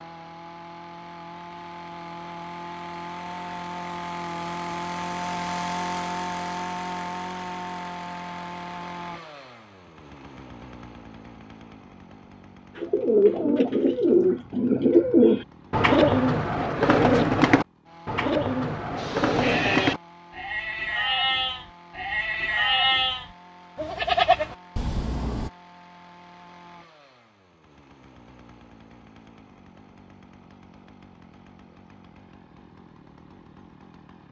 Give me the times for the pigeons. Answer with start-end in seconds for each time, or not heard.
12.8-20.0.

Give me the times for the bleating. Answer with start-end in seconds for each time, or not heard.
18.9-25.5.